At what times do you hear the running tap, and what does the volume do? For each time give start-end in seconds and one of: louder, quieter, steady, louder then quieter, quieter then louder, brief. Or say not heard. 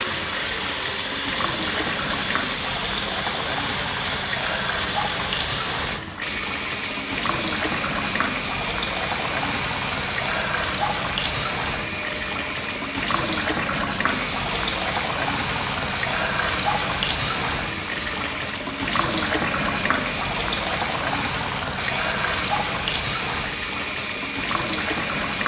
0.0-25.4 steady.